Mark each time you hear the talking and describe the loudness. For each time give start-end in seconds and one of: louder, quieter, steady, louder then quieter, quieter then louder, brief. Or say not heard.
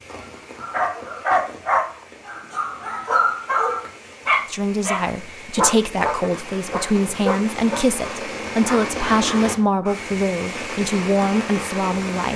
4.5-12.3 steady.